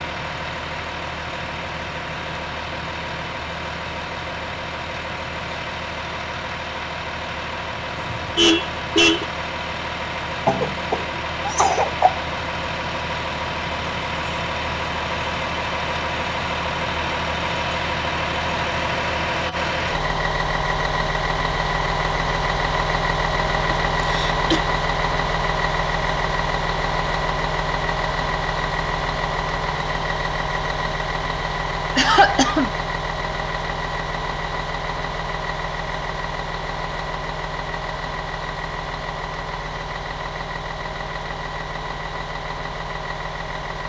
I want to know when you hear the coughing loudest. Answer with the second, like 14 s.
32 s.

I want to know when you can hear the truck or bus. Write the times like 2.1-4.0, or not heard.
0.0-43.8.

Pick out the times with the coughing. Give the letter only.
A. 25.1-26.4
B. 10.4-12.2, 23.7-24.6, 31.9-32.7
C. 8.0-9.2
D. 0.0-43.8
B.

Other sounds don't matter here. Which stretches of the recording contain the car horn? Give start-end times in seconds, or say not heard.
8.0-9.2.